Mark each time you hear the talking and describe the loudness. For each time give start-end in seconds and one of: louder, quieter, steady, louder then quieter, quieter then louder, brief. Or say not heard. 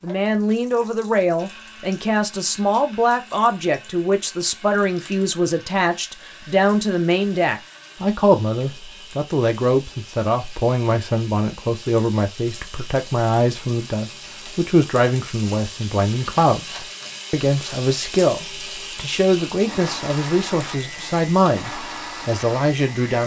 0.0-23.2 steady.